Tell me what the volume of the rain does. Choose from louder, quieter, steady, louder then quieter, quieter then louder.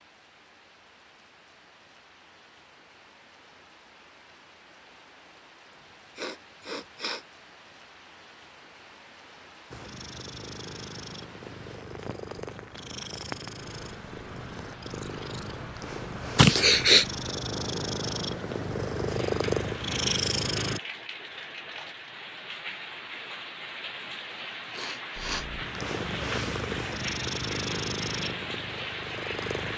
louder.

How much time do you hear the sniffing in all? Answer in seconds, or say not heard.
3 s.